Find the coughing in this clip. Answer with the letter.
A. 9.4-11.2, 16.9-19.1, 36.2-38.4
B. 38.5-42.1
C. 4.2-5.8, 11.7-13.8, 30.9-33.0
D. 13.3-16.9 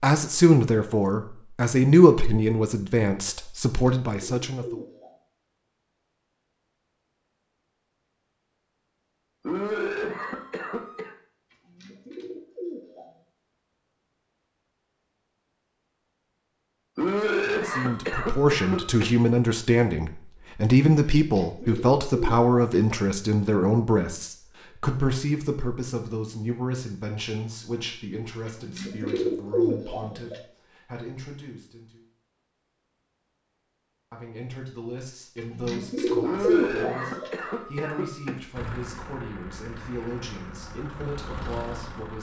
A.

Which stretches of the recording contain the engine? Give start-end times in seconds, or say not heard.
38.5-42.1.